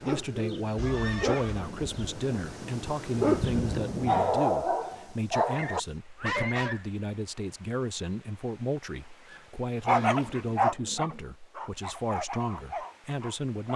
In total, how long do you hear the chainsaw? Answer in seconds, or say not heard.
not heard.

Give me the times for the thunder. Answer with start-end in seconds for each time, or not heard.
1.6-4.3.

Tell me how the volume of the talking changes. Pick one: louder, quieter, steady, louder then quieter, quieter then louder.
steady.